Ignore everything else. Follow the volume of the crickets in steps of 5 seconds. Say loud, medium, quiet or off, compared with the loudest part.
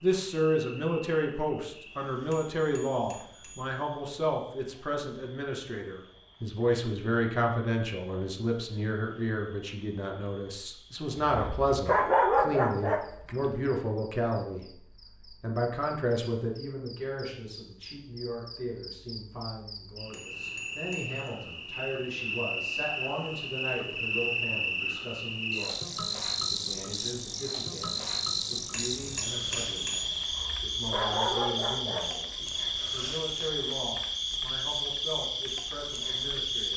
quiet, quiet, quiet, quiet, loud, loud, loud, loud.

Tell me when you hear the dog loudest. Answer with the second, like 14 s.
12 s.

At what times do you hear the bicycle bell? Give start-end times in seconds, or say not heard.
2.3-3.8, 20.1-21.2, 28.7-30.1.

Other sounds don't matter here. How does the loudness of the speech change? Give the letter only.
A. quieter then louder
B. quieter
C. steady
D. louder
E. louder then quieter
B.